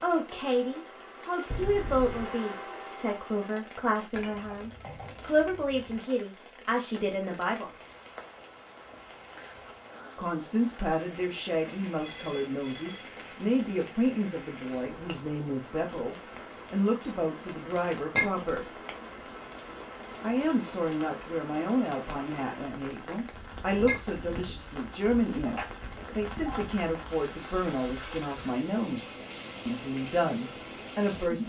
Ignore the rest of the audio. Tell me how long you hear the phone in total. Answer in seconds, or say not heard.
3 s.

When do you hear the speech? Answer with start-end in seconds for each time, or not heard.
0.0-7.7, 10.2-18.8, 20.2-31.4.